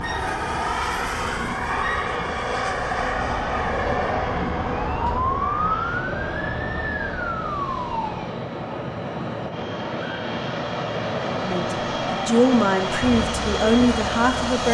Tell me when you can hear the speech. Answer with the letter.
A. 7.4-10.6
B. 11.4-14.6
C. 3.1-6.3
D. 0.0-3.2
B.